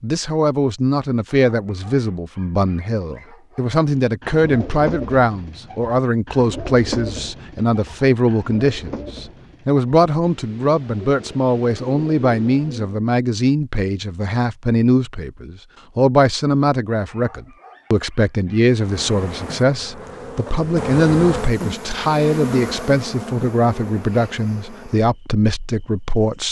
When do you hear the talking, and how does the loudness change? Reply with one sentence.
You can hear the talking from 0.0 to 26.4 s, at a steady volume.